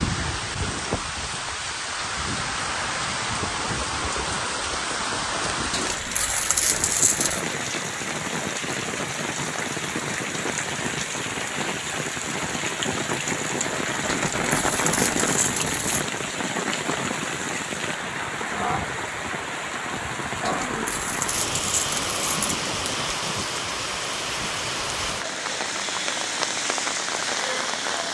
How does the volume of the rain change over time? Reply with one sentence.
The volume of the rain stays about the same.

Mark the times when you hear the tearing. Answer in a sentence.
You can hear the tearing from 5.7 to 7.5 s, from 14.1 to 16.1 s and from 20.4 to 22.4 s.